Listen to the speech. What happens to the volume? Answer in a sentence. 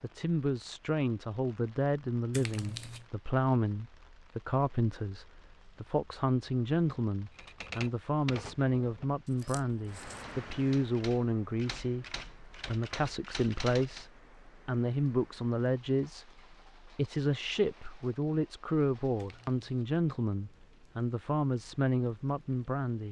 The volume of the speech stays about the same.